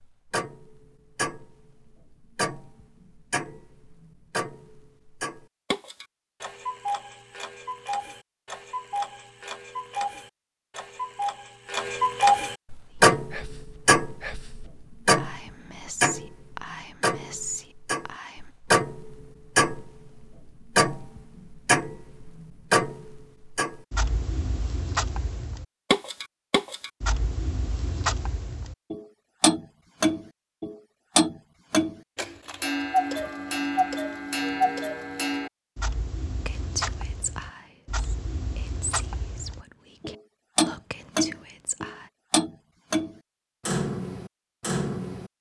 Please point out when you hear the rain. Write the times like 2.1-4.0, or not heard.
not heard.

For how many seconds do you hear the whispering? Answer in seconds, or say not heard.
11 s.